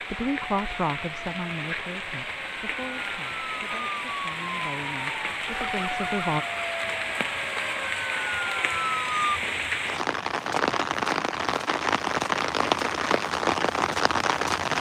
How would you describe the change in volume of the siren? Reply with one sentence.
The volume of the siren goes up.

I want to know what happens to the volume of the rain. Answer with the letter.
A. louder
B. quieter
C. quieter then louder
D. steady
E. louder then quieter
A.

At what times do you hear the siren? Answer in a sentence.
You can hear the siren from 0.0 to 9.4 s.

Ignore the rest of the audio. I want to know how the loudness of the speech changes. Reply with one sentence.
The volume of the speech goes down, then up.